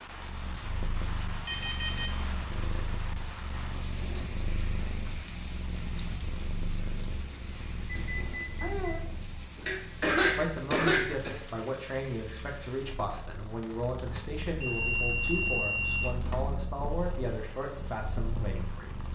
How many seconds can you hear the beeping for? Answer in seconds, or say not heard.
4 s.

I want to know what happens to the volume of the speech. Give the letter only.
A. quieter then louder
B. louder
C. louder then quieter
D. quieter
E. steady
E.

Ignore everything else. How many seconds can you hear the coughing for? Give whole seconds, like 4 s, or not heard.
2 s.